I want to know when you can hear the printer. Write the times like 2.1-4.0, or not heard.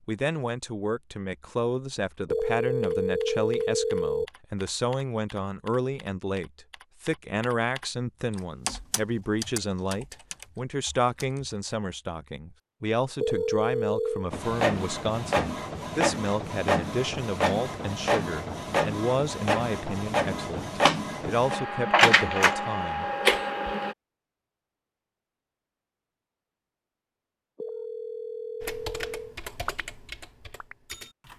14.3-23.9.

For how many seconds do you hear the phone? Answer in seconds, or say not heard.
5 s.